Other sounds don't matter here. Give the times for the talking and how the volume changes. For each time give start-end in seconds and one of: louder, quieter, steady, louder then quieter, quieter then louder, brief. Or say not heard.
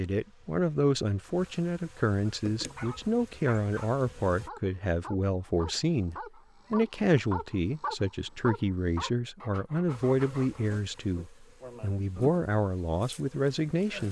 0.0-14.0 steady.